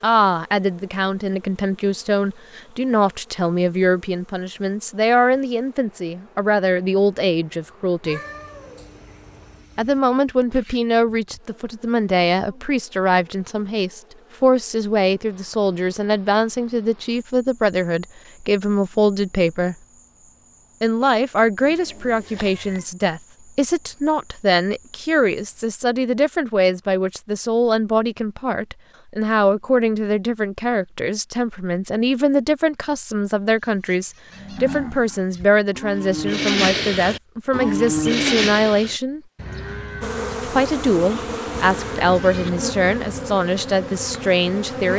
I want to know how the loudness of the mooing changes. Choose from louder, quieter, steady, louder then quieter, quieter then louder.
louder then quieter.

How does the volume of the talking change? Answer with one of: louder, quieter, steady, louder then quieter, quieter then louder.
steady.